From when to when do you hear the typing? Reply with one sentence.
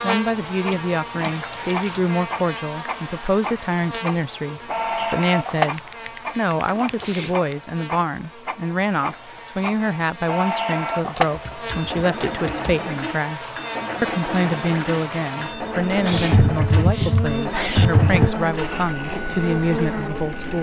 You can hear the typing from 0.7 to 2.0 s, from 5.2 to 7.5 s, from 11.2 to 12.8 s and from 16.0 to 18.4 s.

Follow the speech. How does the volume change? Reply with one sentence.
The volume of the speech stays about the same.